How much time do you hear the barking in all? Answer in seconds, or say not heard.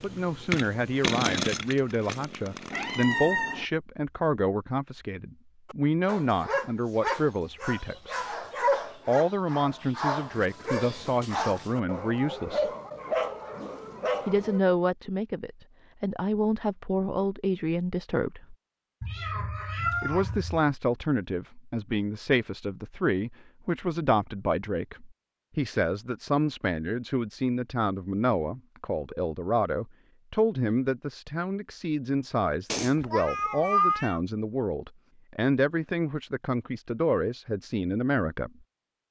9 s.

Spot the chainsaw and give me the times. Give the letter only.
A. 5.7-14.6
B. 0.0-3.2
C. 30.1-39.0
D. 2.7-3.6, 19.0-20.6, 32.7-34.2
B.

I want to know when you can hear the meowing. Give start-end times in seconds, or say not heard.
2.7-3.6, 19.0-20.6, 32.7-34.2.